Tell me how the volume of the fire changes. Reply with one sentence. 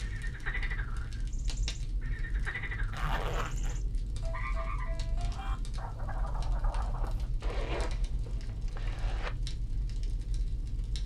The loudness of the fire stays about the same.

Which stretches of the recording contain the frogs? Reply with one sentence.
The frogs can be heard from 0.0 to 7.3 s.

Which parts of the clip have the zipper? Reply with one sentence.
The zipper can be heard from 2.9 to 3.8 s and from 7.4 to 9.3 s.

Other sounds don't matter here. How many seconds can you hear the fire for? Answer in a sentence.
The fire can be heard for 11 seconds in total.